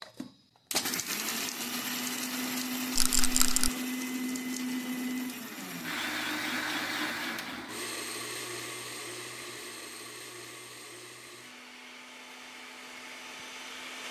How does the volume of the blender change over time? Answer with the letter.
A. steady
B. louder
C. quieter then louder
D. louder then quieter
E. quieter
E.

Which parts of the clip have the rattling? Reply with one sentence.
The rattling can be heard from 3.0 to 3.7 s.